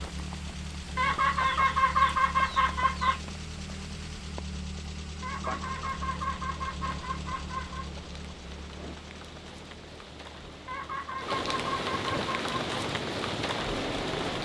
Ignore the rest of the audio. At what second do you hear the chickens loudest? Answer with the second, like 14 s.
2 s.